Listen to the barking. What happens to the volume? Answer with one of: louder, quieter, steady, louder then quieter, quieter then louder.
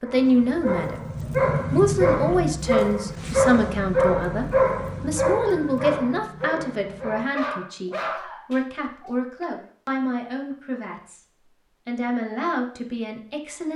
quieter.